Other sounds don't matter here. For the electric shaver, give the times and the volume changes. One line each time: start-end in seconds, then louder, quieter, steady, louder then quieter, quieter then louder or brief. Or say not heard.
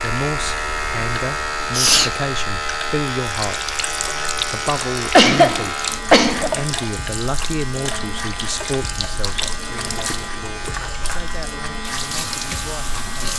0.0-13.3 quieter.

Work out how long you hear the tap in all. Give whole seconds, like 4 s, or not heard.
13 s.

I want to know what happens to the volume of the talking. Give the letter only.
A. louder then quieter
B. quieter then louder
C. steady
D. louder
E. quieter
E.